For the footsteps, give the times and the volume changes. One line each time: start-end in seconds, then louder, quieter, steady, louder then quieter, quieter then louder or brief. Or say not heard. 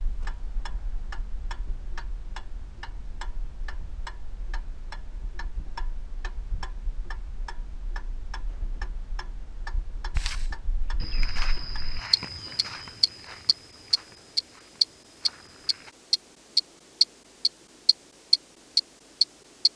10.2-15.9 quieter.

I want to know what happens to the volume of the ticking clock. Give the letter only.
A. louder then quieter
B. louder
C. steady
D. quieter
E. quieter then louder
B.